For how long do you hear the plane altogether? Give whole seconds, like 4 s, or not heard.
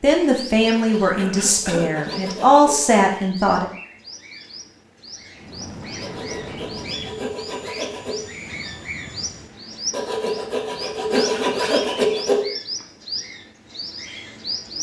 4 s.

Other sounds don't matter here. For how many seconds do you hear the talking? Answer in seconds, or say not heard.
4 s.